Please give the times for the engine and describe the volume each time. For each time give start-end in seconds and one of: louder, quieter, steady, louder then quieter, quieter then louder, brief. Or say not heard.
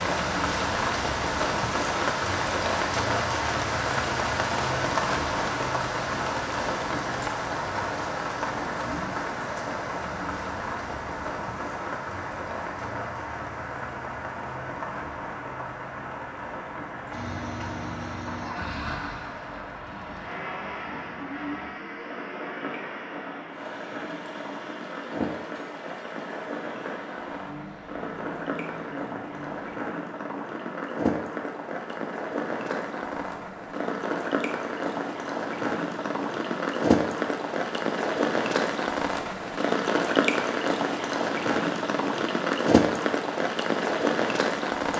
17.1-29.8 quieter.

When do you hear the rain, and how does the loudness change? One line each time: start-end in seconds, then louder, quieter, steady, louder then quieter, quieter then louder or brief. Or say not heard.
0.0-44.9 quieter then louder.